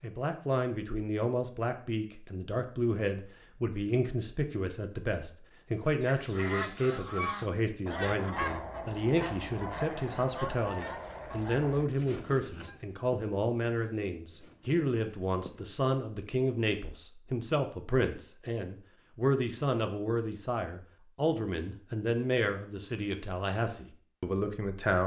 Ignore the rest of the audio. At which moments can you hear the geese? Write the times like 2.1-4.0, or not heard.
6.0-15.8.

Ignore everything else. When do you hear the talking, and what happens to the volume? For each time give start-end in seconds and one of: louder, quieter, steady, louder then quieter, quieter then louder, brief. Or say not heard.
0.0-25.0 steady.